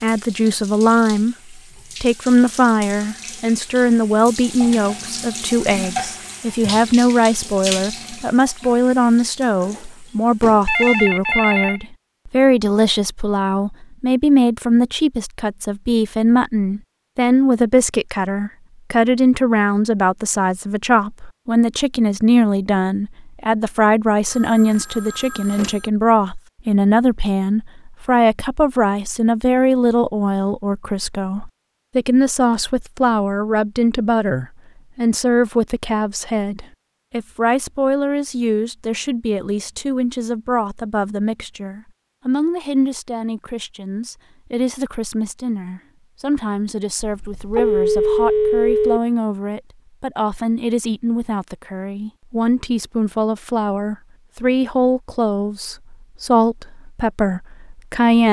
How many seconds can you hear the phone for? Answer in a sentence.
The phone can be heard for 5 seconds in total.